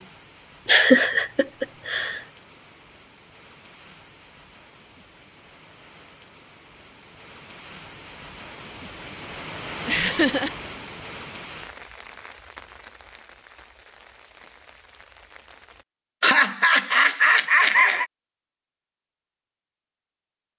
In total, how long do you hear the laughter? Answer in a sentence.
The laughter can be heard for 4 seconds in total.